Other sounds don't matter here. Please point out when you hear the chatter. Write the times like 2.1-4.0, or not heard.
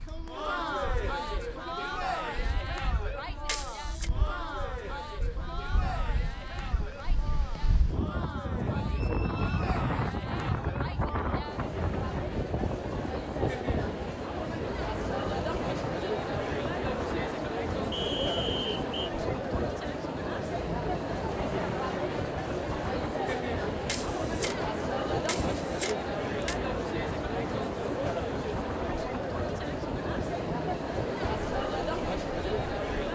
0.0-33.1.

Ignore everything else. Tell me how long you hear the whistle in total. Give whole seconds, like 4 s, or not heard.
2 s.